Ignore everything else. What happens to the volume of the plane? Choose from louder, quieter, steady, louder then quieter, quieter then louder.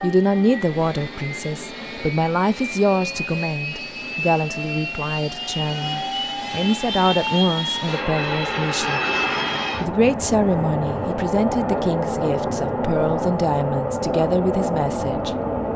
louder.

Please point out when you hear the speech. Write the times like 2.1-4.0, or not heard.
0.0-9.0, 9.8-15.3.